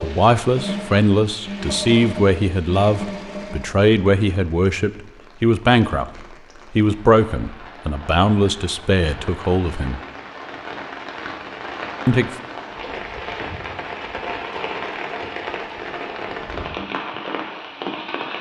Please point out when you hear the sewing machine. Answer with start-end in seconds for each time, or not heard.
0.0-3.8.